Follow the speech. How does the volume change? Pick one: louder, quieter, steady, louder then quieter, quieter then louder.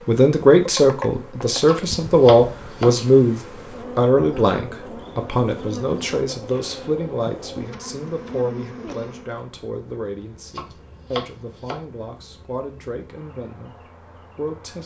quieter.